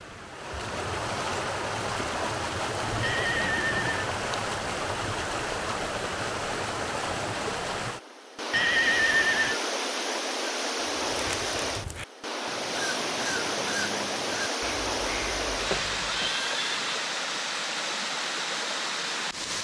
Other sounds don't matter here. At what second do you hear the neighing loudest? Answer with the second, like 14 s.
9 s.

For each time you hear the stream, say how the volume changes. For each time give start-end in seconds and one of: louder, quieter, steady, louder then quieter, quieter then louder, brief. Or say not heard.
0.0-19.5 steady.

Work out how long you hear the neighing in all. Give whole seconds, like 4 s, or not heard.
3 s.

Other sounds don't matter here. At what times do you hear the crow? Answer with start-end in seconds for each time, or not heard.
10.8-16.4.